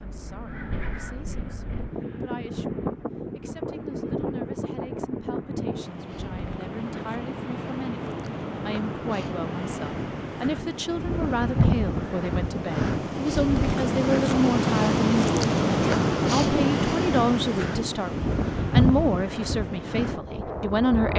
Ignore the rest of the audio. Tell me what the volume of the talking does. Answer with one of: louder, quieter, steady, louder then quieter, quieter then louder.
louder.